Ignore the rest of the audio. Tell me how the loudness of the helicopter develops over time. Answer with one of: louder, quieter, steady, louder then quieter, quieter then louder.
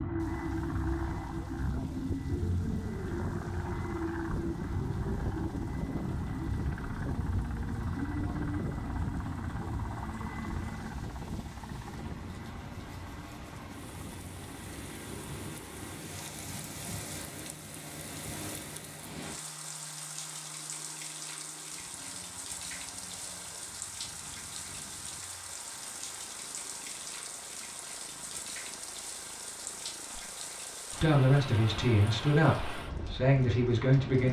quieter.